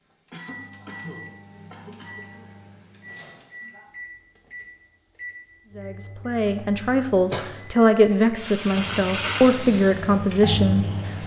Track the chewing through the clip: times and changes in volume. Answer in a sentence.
The chewing can't be heard in this clip.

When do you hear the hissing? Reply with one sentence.
You can hear the hissing from 8.3 to 11.2 s.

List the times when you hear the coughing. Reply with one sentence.
You can hear the coughing from 0.3 to 2.2 s and from 6.5 to 7.5 s.